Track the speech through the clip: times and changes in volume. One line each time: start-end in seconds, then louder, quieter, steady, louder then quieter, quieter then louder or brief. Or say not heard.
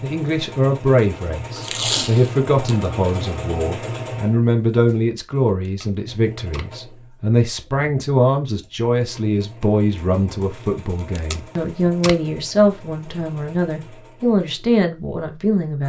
0.0-15.8 steady.